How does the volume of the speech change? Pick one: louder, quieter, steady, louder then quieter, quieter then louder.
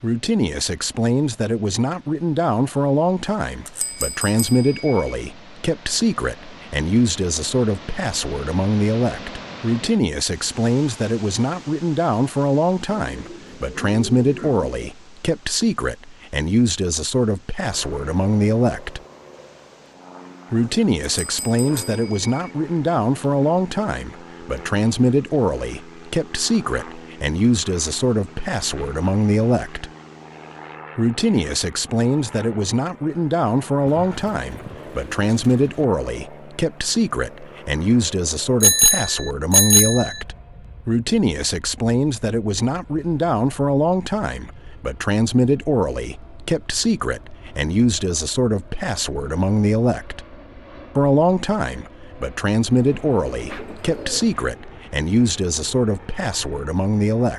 steady.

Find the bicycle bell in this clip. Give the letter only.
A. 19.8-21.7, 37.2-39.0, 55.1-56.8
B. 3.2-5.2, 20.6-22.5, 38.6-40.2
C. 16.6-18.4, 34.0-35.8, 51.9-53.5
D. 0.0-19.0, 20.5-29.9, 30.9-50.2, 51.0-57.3
B.